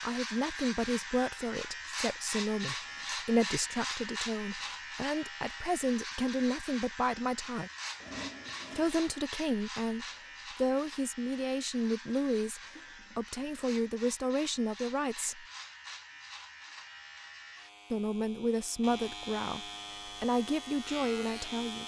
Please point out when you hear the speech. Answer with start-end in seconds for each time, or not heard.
0.0-7.7, 8.8-15.4, 17.9-21.8.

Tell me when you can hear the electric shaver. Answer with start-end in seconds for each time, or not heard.
0.0-21.8.